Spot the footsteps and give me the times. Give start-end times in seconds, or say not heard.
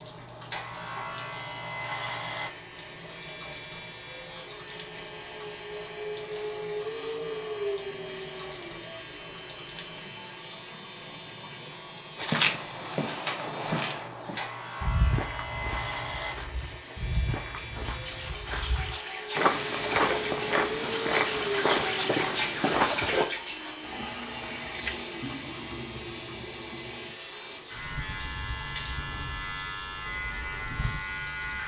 12.2-23.2.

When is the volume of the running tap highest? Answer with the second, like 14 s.
23 s.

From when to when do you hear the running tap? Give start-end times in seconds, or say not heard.
0.0-31.6.